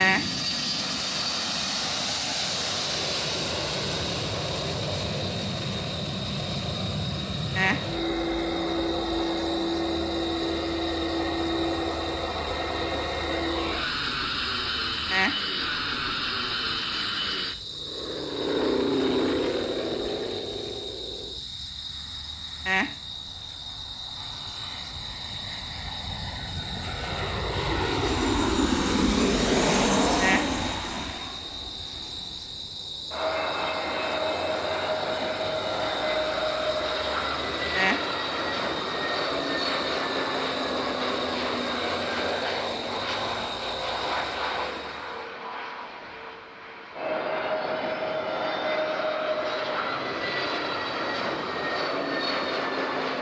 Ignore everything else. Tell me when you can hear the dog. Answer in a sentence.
The dog can't be heard in this clip.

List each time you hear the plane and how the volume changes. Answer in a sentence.
You can hear the plane from 0.0 to 53.1 s, at a steady volume.